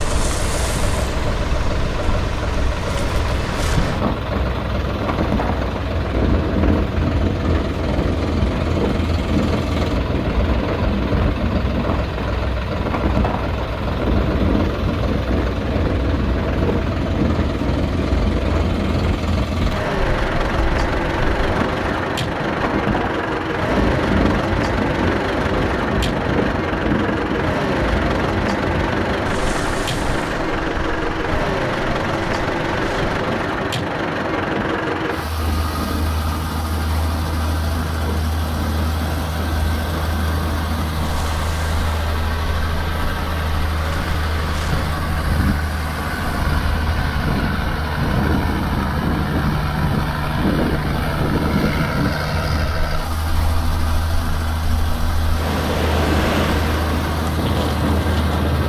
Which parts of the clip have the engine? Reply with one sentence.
The engine can be heard from 0.0 to 58.6 s.